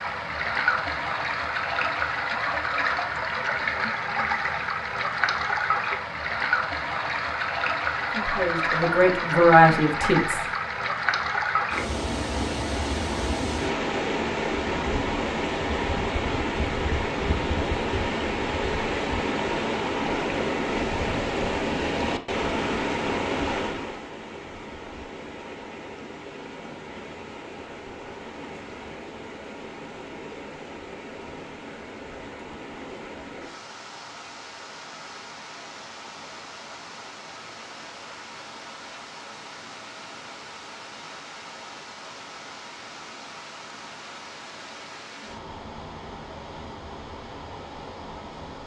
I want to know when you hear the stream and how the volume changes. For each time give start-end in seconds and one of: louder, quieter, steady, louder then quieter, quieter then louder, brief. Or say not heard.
0.0-48.6 quieter.